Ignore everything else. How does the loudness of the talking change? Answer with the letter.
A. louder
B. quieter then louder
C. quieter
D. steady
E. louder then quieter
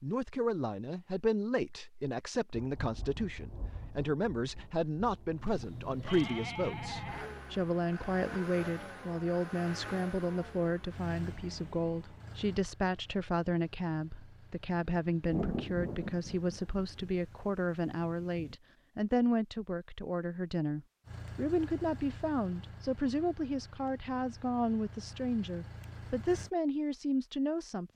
D.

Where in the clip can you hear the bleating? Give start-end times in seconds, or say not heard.
5.8-7.3.